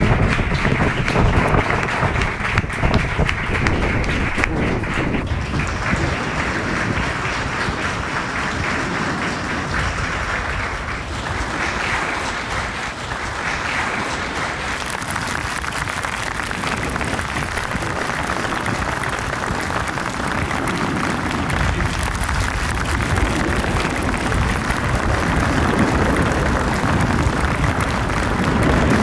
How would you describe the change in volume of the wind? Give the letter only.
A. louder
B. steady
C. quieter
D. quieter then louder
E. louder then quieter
D.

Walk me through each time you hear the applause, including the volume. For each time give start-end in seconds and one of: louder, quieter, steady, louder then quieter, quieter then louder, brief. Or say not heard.
0.0-28.9 steady.